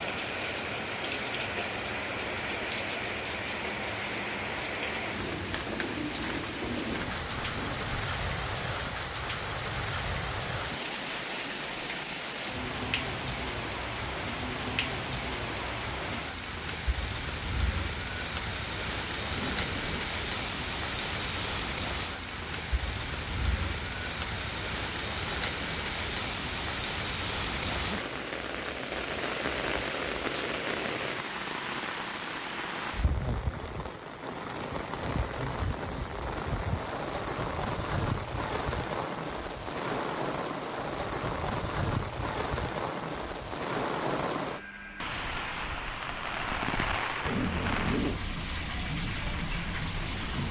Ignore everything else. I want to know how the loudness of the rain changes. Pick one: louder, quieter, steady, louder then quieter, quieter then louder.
steady.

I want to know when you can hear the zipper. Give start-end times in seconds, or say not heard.
6.8-8.0, 19.3-20.1, 47.2-48.2.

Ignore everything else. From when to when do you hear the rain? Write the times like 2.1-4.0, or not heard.
0.0-50.4.